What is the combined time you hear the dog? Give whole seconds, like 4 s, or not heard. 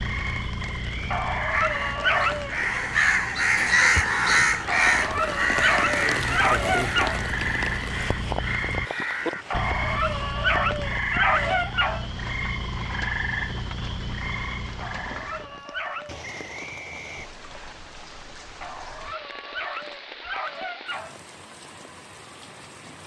11 s.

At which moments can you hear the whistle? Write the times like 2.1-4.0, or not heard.
0.6-1.3, 16.2-17.8.